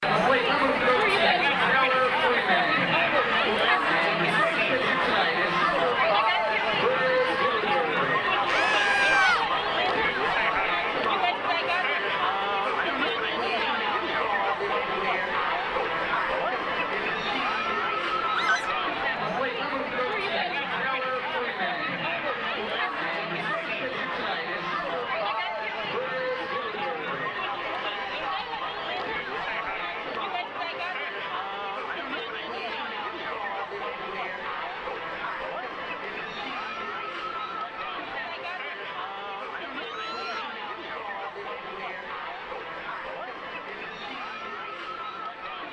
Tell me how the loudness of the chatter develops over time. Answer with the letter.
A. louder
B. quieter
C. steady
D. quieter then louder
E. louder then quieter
B.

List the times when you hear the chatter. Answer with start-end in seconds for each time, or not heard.
0.0-45.6.